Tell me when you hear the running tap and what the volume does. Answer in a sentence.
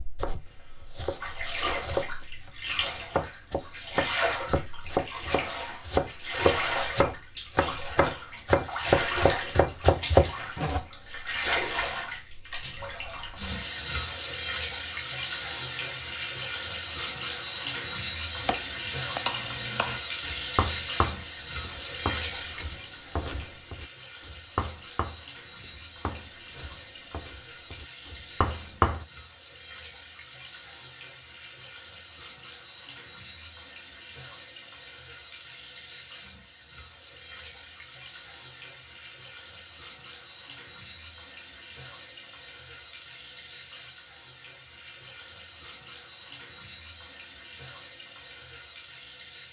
You can hear the running tap from 0.0 to 49.4 s, getting quieter.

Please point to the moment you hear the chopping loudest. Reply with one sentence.
The volume of the chopping peaks at 10 seconds.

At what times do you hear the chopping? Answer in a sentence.
The chopping can be heard from 0.1 to 10.8 s and from 18.4 to 29.1 s.